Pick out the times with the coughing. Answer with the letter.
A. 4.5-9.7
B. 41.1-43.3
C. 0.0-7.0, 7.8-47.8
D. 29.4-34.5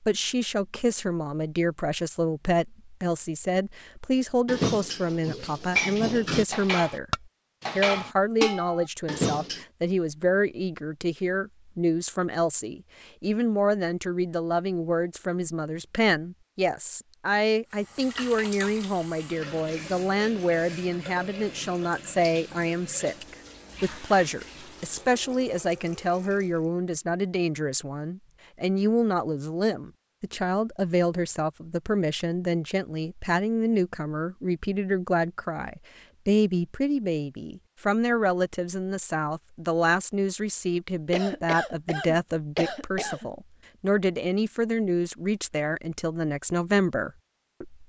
B.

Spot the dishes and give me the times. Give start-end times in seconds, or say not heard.
4.5-9.7.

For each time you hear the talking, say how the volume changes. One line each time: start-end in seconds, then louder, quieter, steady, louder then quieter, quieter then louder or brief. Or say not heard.
0.0-7.0 steady
7.8-47.8 steady.